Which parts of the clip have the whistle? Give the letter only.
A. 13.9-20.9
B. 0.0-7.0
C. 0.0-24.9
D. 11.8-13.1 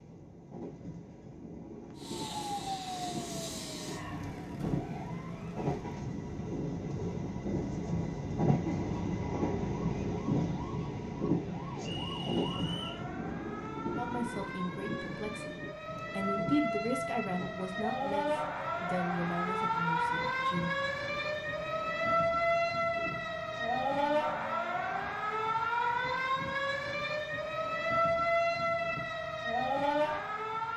D.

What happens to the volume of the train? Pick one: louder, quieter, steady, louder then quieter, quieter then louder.
louder then quieter.